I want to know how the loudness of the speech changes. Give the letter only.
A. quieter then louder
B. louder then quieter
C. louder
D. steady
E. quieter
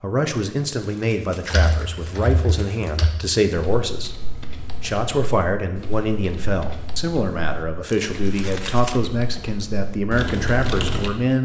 D.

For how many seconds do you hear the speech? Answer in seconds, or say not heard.
11 s.